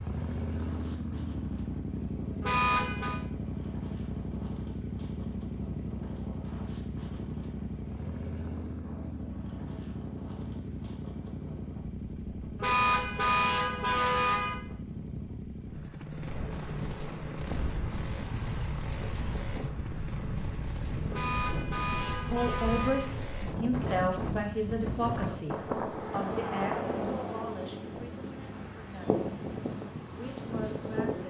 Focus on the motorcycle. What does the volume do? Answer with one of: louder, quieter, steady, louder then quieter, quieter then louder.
quieter.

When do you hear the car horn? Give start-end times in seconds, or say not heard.
2.4-3.2, 12.6-14.6, 21.1-23.1.